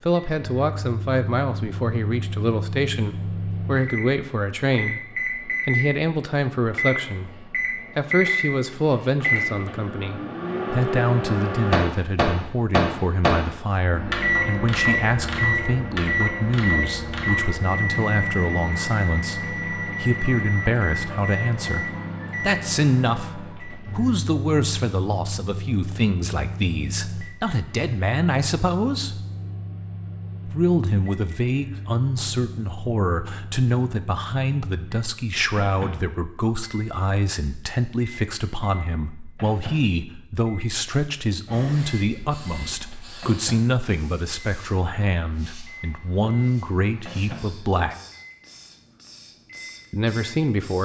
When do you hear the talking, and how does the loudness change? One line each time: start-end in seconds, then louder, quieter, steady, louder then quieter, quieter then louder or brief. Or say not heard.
0.0-29.2 steady
30.4-48.0 steady
49.9-50.8 brief.